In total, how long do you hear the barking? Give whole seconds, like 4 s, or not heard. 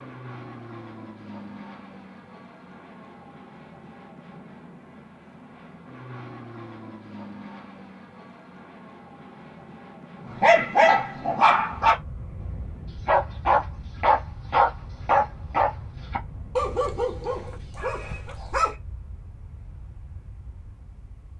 8 s.